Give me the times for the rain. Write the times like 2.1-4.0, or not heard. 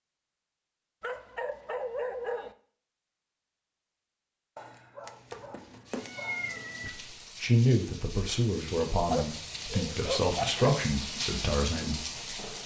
5.0-12.6.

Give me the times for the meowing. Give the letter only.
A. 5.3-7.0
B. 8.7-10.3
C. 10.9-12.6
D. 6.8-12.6
A.